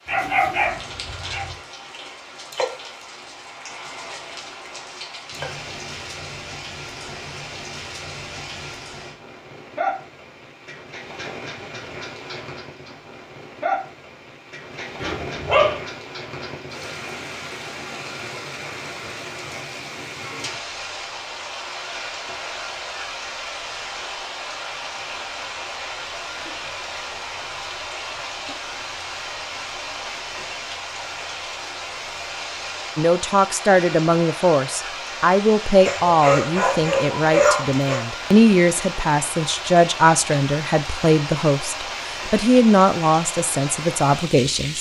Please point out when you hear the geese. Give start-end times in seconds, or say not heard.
not heard.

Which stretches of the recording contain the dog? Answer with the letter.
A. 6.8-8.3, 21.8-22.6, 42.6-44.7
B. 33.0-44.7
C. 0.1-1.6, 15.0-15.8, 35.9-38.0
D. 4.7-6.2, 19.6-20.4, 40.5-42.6
C.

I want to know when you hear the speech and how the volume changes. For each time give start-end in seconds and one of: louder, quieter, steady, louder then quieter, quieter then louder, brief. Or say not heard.
33.0-44.7 steady.